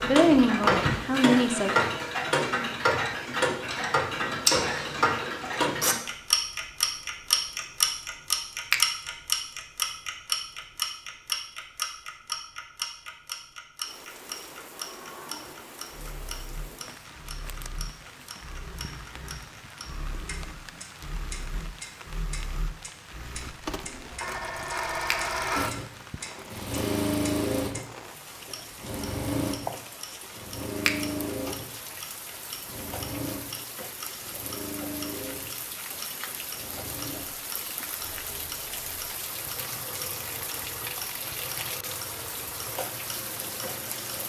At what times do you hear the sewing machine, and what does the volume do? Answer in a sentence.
You can hear the sewing machine from 14.7 to 44.2 s, getting louder then quieter.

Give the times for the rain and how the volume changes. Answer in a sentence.
The rain can be heard from 13.8 to 44.2 s, getting louder.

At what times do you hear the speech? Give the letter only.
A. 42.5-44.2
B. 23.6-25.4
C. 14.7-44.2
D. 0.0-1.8
D.